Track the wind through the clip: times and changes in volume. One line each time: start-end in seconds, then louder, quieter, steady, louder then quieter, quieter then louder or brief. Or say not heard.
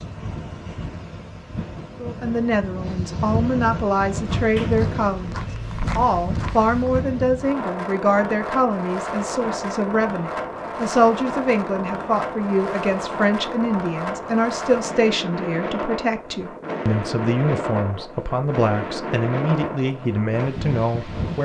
0.0-21.4 steady.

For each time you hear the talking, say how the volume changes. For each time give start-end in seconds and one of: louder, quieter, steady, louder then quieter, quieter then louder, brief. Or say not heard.
1.9-21.4 steady.